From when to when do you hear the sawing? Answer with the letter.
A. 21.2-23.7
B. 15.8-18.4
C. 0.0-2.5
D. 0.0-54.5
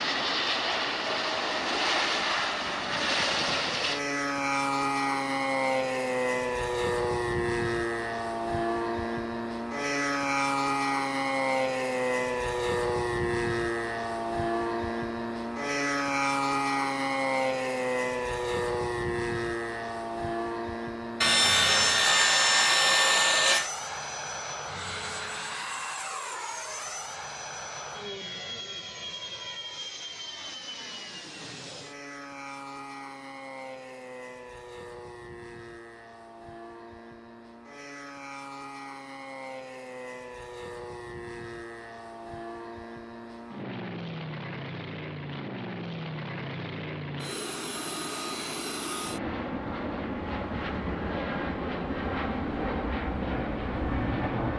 A.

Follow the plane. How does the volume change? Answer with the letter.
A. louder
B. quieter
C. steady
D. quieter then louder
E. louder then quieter
D.